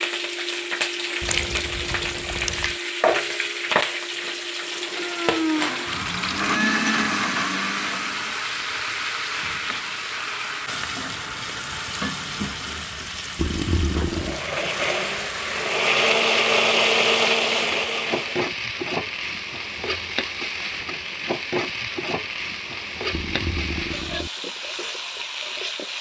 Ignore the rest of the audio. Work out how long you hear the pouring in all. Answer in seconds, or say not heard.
4 s.